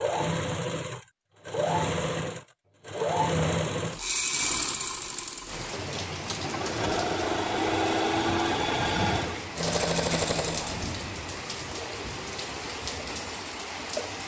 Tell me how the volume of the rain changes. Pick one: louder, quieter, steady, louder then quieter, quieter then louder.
steady.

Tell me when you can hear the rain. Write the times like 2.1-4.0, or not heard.
5.5-14.2.